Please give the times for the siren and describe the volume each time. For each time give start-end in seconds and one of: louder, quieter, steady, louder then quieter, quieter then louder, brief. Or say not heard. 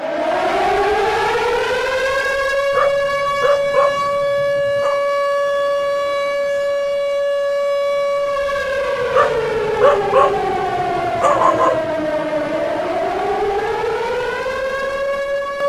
0.0-15.6 steady.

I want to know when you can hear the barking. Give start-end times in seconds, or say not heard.
2.7-5.0, 9.1-11.8.